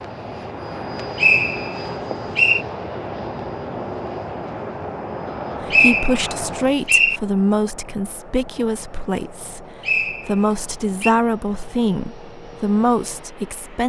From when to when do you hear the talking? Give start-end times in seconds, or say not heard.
5.6-13.8.